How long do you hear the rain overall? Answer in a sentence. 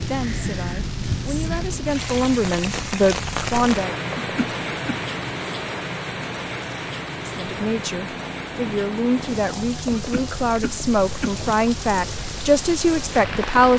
You can hear the rain for 14 seconds altogether.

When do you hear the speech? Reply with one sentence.
You can hear the speech from 0.0 to 4.0 s and from 7.2 to 13.7 s.